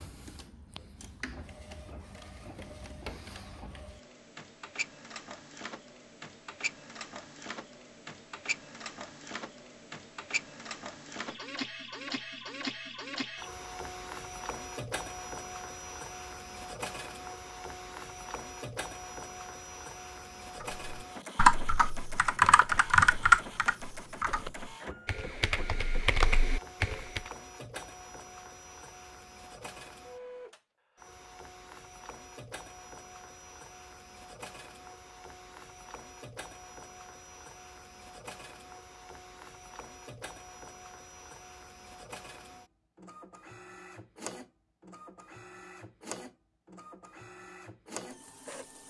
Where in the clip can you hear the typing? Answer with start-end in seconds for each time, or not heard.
20.6-27.2.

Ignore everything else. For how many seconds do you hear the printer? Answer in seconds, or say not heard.
49 s.